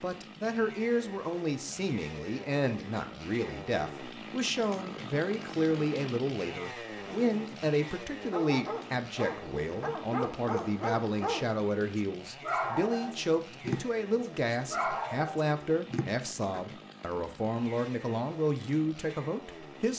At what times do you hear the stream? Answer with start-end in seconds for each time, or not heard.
not heard.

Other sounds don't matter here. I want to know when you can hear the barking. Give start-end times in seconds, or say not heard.
8.2-16.6.